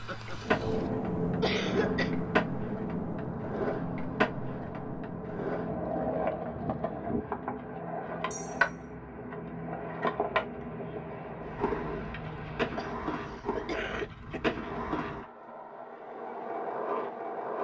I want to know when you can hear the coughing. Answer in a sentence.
The coughing can be heard from 1.4 to 2.1 s, from 8.3 to 8.8 s and from 12.8 to 14.6 s.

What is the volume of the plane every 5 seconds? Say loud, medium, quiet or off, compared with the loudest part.
loud, medium, medium, off.